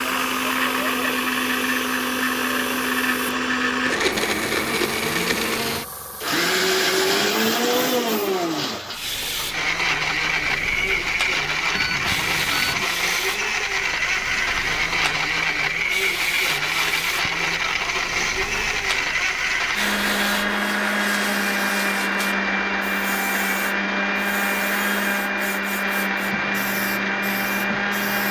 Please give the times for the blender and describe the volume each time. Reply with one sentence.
The blender can be heard from 0.0 to 28.2 s, at a steady volume.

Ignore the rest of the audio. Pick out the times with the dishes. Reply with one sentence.
The dishes can't be heard in this clip.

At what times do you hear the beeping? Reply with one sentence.
You can hear the beeping from 11.7 to 12.8 s.